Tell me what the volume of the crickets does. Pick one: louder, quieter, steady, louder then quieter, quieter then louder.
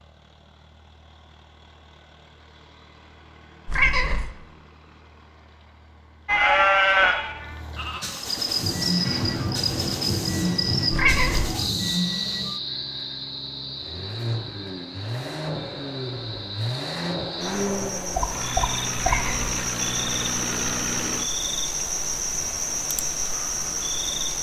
quieter then louder.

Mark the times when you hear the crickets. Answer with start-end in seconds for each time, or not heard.
8.2-24.3.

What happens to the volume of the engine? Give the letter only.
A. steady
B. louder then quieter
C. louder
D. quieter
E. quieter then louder
C.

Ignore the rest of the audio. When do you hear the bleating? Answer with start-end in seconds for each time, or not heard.
6.2-9.4.